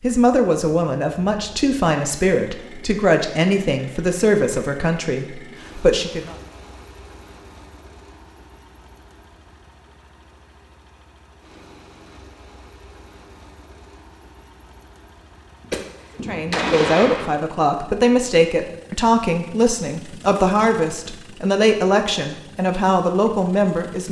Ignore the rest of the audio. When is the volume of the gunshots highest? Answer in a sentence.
The loudest moment of the gunshots is at 17 seconds.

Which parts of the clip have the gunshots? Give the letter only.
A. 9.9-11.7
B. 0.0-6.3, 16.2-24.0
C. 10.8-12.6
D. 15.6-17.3
D.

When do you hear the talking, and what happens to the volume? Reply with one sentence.
You can hear the talking from 0.0 to 6.3 s, at a steady volume; and from 16.2 to 24.0 s, at a steady volume.